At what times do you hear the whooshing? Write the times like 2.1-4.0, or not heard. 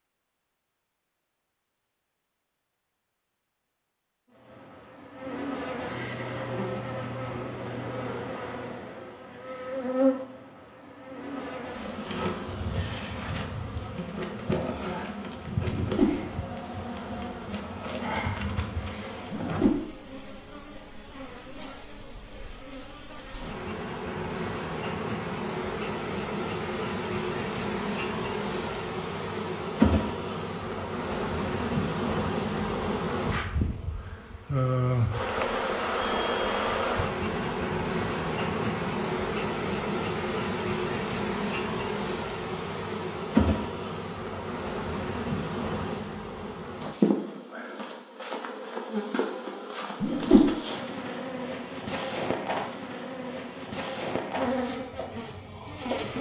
15.7-16.2, 19.3-19.8, 50.0-50.5.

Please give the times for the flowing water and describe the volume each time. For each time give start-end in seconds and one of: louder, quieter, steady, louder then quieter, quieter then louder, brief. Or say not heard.
not heard.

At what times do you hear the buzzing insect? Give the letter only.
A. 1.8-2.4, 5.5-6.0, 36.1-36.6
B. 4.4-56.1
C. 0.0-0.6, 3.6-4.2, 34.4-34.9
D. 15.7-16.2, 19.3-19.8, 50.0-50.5
B.